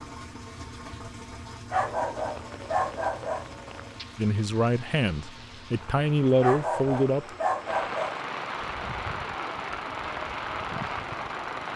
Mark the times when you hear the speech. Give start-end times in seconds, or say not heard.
4.2-7.2.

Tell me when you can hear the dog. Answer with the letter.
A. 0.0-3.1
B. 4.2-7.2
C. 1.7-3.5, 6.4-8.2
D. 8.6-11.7
C.